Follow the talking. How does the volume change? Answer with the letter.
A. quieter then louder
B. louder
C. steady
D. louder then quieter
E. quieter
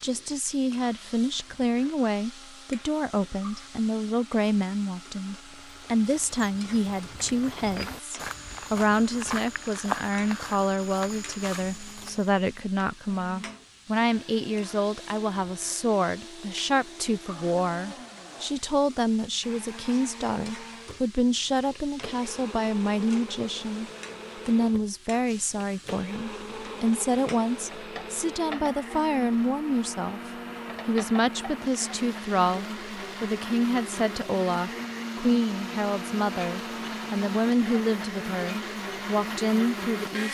C.